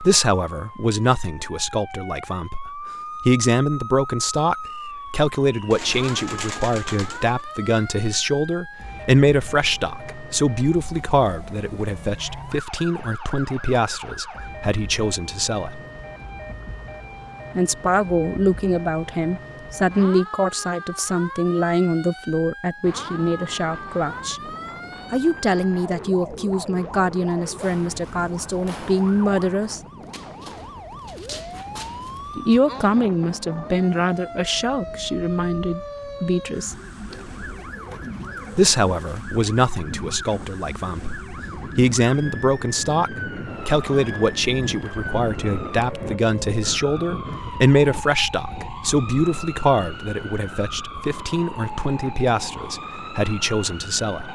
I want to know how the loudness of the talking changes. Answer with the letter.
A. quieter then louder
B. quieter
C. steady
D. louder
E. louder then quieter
C.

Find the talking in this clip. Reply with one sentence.
You can hear the talking from 0.0 to 15.8 s, from 17.6 to 24.4 s, from 25.1 to 29.8 s, from 32.4 to 36.8 s and from 38.5 to 54.3 s.